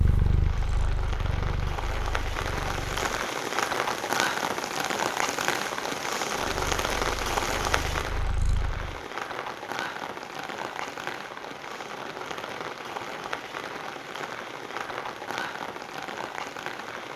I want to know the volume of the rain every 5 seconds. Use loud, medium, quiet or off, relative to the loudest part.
loud, loud, medium, medium.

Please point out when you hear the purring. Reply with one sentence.
You can hear the purring from 0.0 to 3.1 s and from 6.5 to 9.0 s.